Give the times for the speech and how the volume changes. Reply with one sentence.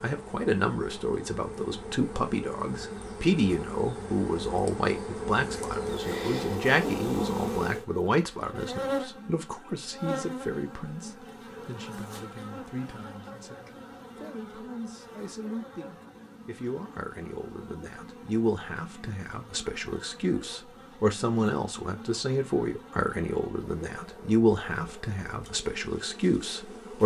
The speech can be heard from 0.0 to 27.0 s, getting quieter then louder.